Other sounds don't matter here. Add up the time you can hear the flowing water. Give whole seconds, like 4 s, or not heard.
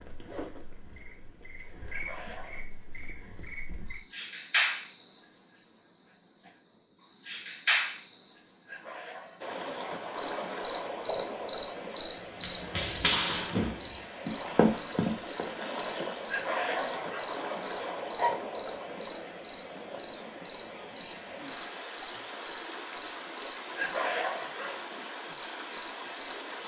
17 s.